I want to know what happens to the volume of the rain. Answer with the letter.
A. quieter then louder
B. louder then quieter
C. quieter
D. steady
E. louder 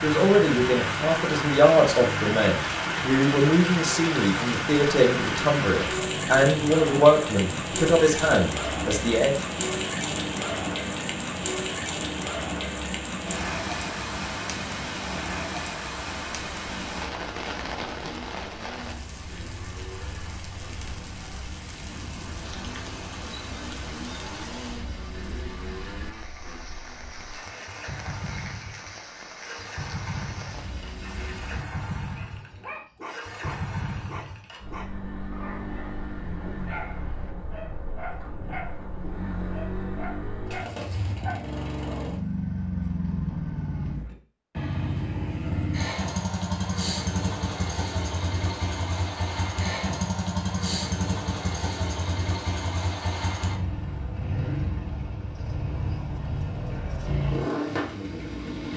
C.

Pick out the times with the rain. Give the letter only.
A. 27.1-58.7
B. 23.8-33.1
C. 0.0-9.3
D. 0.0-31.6
D.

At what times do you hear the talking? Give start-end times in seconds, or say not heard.
0.0-9.3.